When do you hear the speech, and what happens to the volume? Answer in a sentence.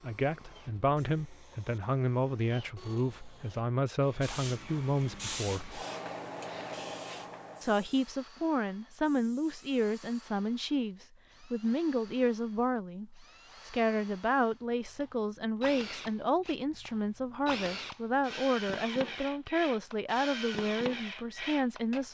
The speech can be heard from 0.0 to 5.8 s, at a steady volume; and from 7.6 to 22.0 s, at a steady volume.